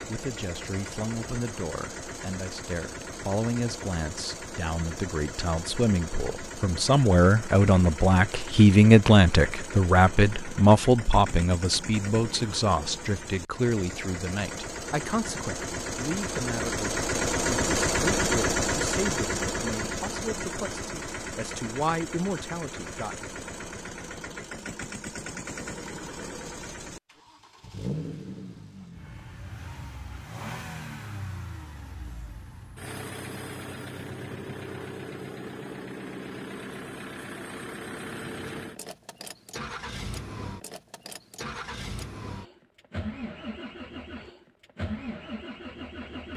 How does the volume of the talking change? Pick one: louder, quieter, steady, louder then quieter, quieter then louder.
louder then quieter.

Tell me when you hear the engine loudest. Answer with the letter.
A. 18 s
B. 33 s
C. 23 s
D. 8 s
A.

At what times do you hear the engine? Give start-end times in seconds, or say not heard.
0.0-46.3.